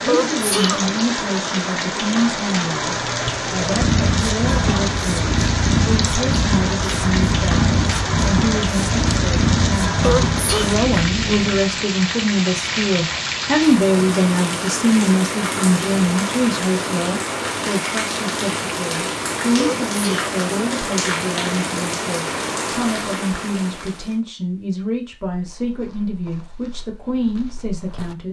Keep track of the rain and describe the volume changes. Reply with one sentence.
The loudness of the rain stays about the same.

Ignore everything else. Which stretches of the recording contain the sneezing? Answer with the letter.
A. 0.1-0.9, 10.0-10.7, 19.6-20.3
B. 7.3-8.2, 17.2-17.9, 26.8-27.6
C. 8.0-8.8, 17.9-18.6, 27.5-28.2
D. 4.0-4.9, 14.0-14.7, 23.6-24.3
A.